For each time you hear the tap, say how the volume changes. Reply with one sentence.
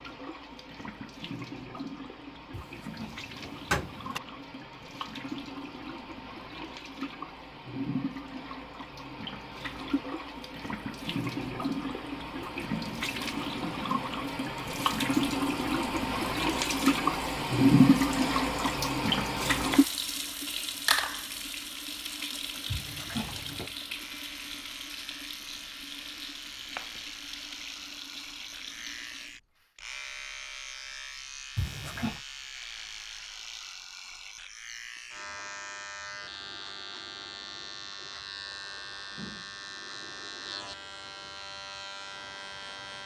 You can hear the tap from 0.0 to 29.8 s, getting louder then quieter.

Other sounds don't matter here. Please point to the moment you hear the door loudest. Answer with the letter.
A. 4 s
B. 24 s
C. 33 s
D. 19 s
A.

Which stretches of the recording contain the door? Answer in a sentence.
The door can be heard from 2.5 to 4.2 s, from 22.6 to 23.8 s and from 31.6 to 32.2 s.